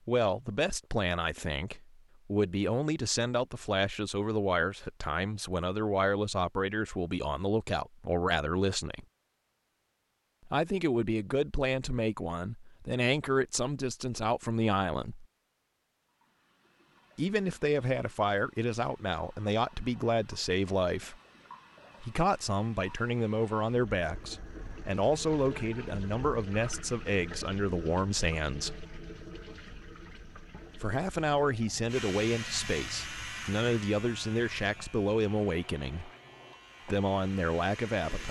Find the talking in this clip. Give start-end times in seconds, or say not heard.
0.1-9.1, 10.4-15.2, 17.1-21.1, 22.0-28.9, 30.7-36.1, 36.9-38.2.